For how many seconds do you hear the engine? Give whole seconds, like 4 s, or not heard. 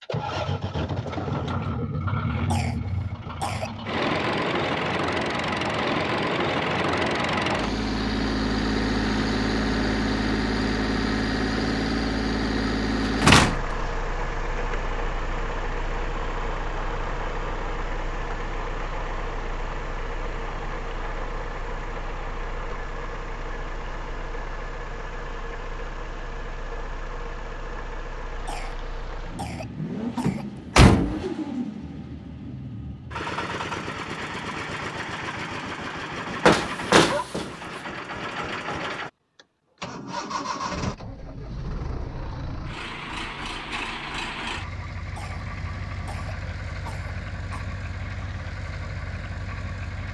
50 s.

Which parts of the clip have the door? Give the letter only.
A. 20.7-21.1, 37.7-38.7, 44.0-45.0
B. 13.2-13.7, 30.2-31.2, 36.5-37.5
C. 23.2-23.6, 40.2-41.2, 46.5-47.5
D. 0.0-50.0
B.